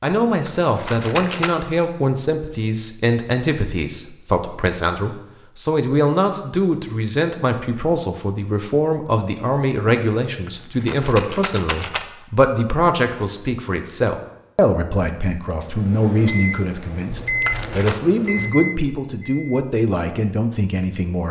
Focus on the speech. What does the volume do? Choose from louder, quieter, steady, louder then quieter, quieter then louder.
steady.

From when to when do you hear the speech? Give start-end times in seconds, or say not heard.
0.0-21.2.